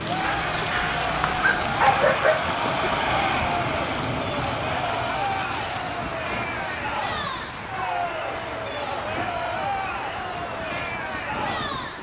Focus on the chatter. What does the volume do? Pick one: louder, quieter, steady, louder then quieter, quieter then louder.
steady.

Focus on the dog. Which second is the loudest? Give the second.
2 s.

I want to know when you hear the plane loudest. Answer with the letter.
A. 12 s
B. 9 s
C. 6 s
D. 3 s
D.